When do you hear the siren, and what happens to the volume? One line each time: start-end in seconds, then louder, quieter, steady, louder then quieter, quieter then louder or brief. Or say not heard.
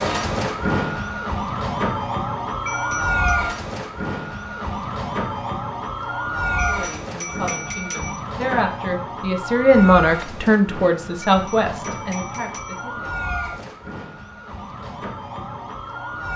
0.0-16.3 quieter.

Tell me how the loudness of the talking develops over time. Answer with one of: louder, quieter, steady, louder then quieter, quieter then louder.
louder then quieter.